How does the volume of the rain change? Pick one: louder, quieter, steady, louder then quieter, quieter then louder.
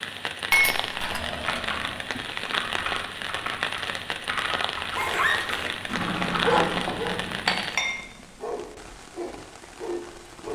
quieter.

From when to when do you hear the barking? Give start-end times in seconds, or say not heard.
5.0-10.5.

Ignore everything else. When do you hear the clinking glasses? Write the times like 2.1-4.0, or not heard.
0.5-1.2, 6.8-8.0.